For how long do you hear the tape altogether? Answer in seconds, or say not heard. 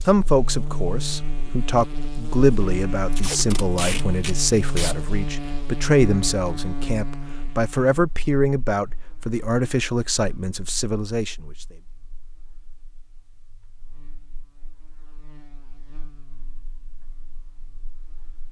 2 s.